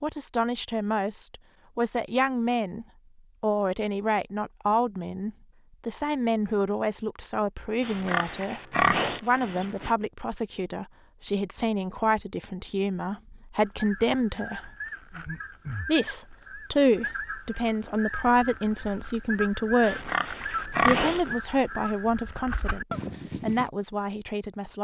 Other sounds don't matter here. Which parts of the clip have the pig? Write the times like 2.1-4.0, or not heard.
7.8-9.9, 19.8-21.3.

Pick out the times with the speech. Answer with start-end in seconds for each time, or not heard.
0.0-8.6, 9.2-14.7, 15.8-20.0, 20.9-24.7.